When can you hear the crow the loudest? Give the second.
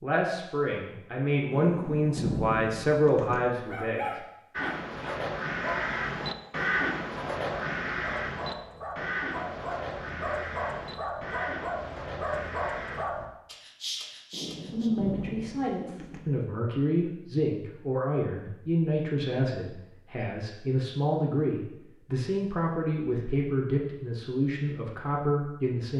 7 s.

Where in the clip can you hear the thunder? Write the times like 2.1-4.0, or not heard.
1.5-3.5, 14.3-16.2.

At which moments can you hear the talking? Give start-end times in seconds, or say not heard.
0.0-4.2, 14.7-25.9.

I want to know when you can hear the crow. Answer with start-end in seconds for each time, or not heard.
4.5-13.1.